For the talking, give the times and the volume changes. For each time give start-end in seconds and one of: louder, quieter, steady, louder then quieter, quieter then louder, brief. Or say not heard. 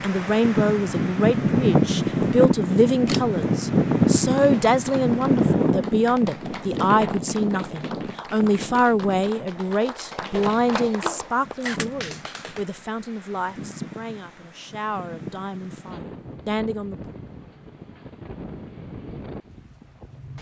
0.0-17.0 quieter.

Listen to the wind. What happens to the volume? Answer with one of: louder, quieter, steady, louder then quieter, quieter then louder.
quieter.